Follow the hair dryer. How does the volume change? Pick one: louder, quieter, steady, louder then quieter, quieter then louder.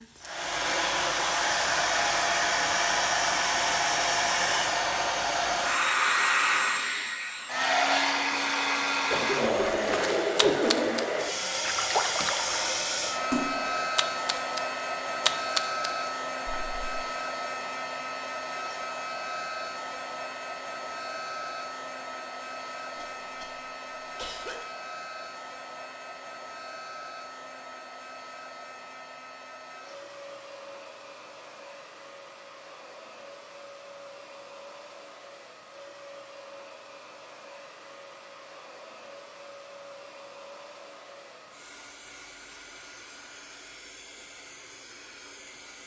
quieter.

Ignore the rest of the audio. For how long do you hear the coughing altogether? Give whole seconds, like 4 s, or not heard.
3 s.